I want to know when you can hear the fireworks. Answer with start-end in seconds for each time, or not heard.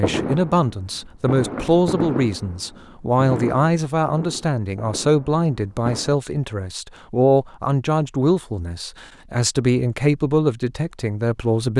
0.0-6.2.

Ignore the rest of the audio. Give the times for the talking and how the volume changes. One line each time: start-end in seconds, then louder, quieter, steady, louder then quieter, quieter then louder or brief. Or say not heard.
0.0-11.7 steady.